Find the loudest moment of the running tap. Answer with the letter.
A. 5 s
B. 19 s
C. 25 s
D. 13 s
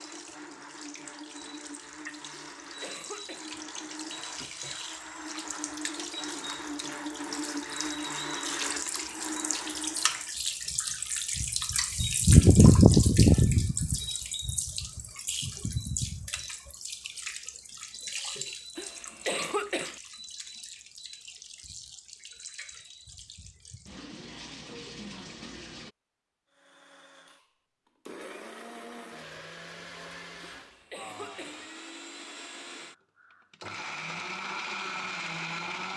D.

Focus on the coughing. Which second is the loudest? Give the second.
19 s.